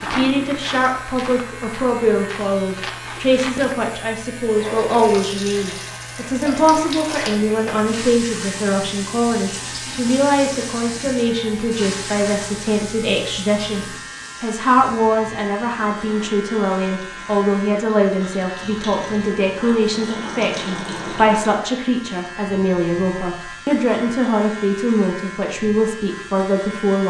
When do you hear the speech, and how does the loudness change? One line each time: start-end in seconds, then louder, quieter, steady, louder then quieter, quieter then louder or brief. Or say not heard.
0.0-27.0 steady.